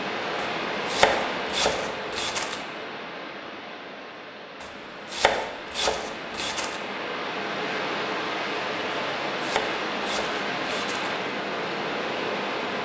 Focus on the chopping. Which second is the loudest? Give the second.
1 s.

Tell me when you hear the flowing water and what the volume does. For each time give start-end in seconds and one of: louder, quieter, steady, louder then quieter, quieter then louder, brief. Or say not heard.
0.0-12.8 quieter then louder.